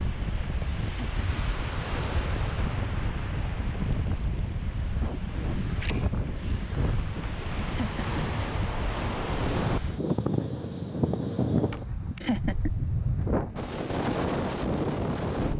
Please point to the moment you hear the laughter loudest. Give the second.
12 s.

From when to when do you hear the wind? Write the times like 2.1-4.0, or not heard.
0.0-15.5.